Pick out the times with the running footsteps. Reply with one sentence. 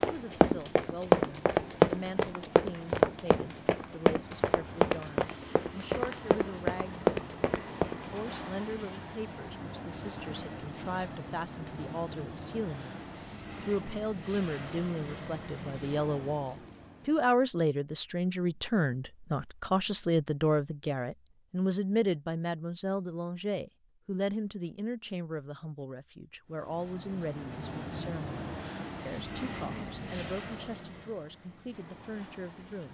You can hear the running footsteps from 0.0 to 8.1 s.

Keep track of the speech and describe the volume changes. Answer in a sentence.
The volume of the speech goes up, then down.